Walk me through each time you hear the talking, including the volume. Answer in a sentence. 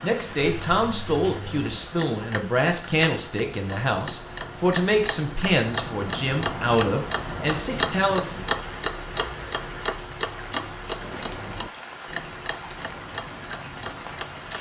The talking can be heard from 0.0 to 8.4 s, at a steady volume.